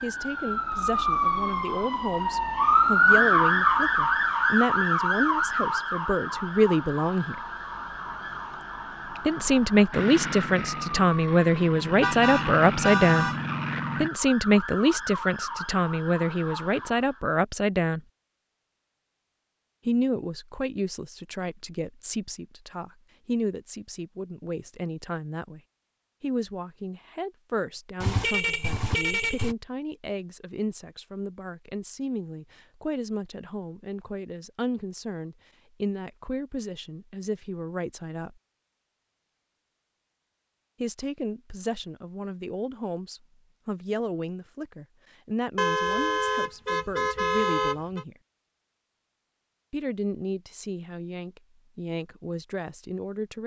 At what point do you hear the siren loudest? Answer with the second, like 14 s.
3 s.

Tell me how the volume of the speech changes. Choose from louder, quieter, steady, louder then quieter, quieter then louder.
quieter.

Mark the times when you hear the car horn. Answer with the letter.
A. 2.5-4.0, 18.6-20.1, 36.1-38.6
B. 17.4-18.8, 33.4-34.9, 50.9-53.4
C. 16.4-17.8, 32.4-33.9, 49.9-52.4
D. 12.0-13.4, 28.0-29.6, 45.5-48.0
D.